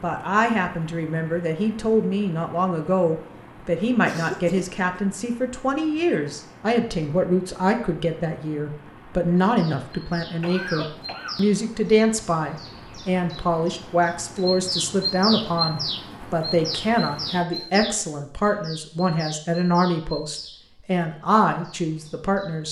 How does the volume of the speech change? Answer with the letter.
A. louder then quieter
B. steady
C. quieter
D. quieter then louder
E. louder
B.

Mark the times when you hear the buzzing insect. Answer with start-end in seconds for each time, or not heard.
not heard.